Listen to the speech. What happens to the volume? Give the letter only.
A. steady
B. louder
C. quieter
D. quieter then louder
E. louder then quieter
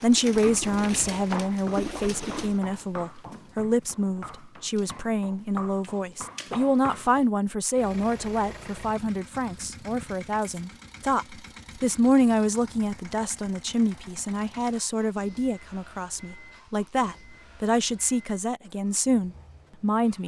A.